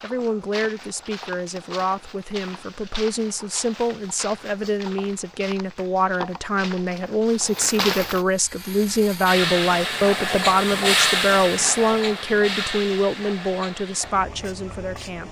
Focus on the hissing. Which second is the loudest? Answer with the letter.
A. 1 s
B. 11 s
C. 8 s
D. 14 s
B.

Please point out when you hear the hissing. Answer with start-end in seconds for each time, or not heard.
8.2-15.2.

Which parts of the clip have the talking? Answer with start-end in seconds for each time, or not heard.
0.0-15.2.